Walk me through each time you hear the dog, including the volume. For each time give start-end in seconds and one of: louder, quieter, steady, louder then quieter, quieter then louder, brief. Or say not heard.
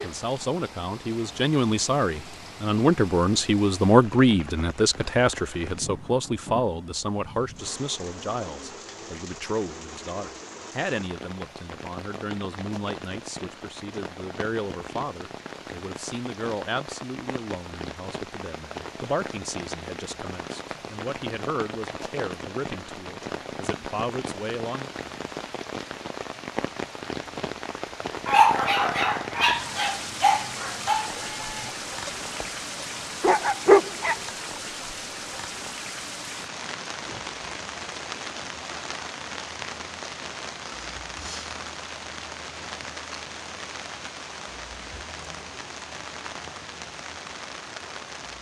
28.2-34.1 quieter then louder.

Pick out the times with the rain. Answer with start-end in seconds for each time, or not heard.
0.0-48.3.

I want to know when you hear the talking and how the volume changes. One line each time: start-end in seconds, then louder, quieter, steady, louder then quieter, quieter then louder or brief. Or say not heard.
0.0-24.9 quieter.